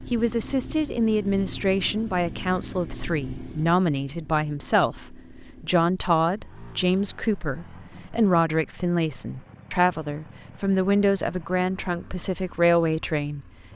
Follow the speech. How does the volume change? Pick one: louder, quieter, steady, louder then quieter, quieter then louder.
steady.